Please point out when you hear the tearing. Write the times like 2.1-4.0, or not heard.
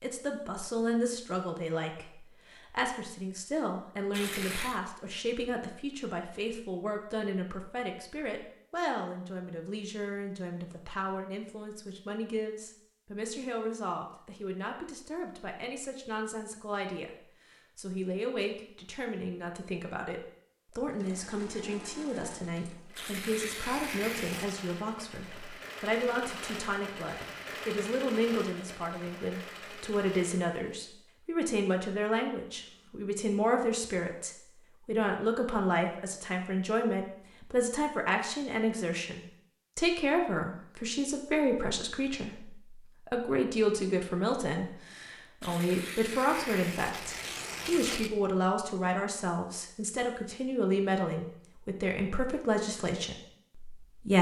4.1-4.8, 22.9-24.6, 45.4-48.1.